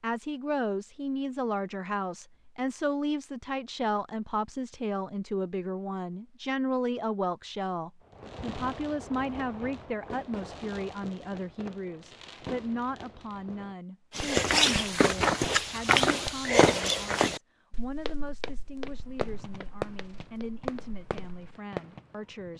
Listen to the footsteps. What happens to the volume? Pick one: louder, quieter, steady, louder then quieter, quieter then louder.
quieter.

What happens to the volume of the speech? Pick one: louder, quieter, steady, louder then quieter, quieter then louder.
quieter.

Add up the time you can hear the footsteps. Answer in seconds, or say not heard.
7 s.